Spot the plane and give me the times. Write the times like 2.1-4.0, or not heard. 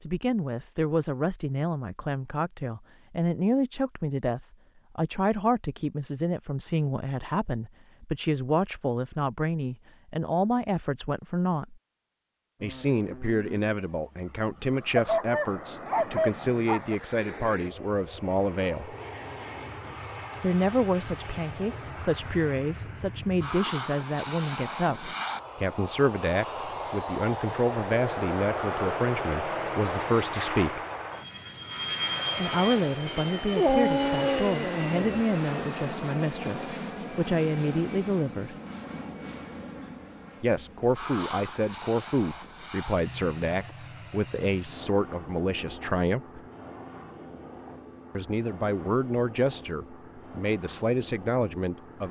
12.6-52.0.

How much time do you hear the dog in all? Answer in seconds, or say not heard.
4 s.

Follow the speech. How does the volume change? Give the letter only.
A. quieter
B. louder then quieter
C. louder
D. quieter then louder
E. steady
E.